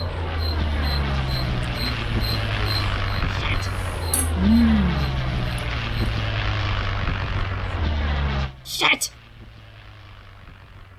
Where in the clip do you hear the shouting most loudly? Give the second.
9 s.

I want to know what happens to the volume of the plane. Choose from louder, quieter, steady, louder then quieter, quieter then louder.
quieter.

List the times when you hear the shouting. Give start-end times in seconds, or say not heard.
3.2-3.7, 8.7-9.1.